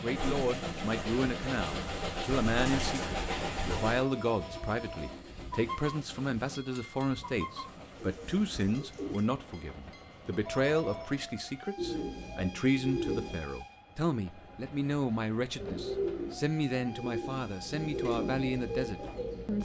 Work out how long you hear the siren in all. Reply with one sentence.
The siren can't be heard in this clip.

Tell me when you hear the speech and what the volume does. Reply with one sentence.
The speech can be heard from 0.0 to 19.6 s, at a steady volume.